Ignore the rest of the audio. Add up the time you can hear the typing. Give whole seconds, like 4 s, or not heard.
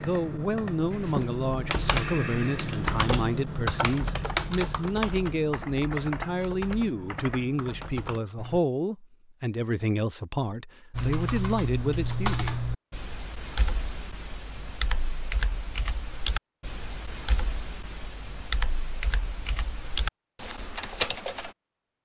19 s.